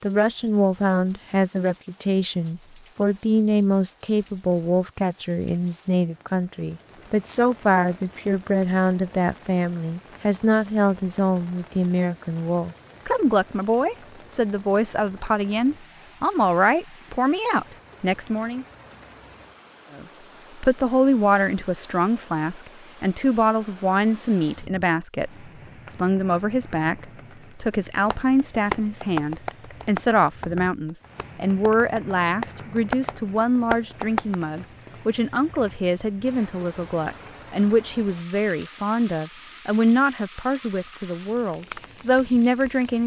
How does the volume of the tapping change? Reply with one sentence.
The loudness of the tapping goes down, then up.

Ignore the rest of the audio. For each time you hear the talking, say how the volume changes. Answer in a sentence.
The talking can be heard from 0.0 to 18.6 s, at a steady volume; and from 19.9 to 43.0 s, at a steady volume.